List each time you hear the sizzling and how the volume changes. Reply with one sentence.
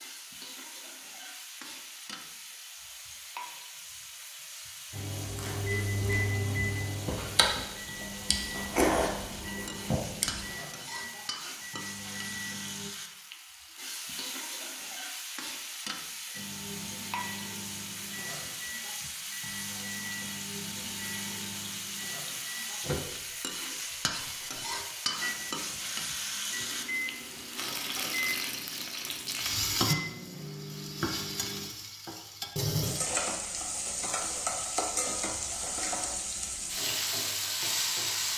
The sizzling can be heard from 0.0 to 38.3 s, getting louder.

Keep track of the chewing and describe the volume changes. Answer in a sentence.
The loudness of the chewing goes up, then down.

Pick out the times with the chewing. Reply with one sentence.
You can hear the chewing from 5.2 to 10.4 s.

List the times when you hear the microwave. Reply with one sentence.
You can hear the microwave from 4.9 to 12.9 s and from 16.3 to 31.7 s.